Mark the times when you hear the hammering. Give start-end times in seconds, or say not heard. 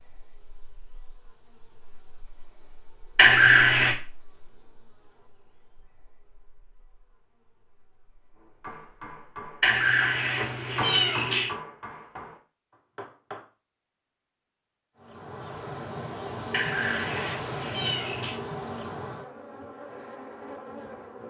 8.3-13.4.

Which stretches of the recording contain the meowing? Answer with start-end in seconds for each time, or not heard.
3.1-4.0, 9.6-11.5, 16.5-18.4.